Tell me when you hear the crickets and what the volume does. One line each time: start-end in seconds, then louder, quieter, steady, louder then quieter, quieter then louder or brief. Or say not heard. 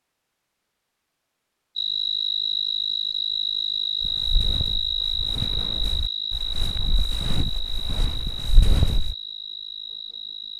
1.8-10.5 quieter.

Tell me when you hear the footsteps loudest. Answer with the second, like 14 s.
9 s.